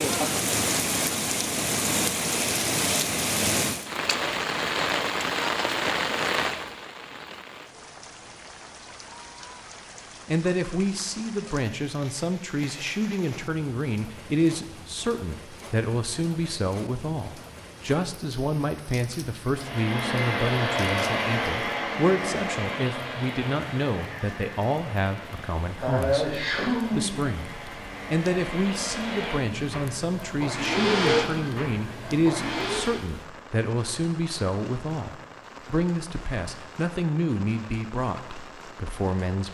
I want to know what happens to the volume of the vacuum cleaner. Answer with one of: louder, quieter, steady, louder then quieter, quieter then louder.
quieter then louder.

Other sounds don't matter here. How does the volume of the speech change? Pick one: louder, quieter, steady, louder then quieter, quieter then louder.
steady.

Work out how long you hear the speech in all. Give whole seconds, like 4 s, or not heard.
29 s.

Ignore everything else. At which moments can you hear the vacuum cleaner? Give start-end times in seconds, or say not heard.
19.6-33.0.